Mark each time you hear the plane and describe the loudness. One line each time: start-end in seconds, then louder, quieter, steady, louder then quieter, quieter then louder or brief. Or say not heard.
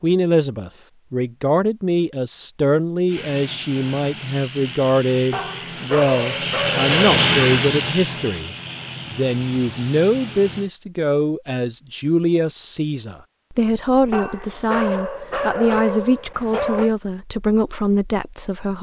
3.0-10.7 louder then quieter.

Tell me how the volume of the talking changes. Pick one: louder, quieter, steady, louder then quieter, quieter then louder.
steady.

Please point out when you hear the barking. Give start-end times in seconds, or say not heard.
5.3-7.2, 14.1-16.9.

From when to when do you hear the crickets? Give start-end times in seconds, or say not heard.
not heard.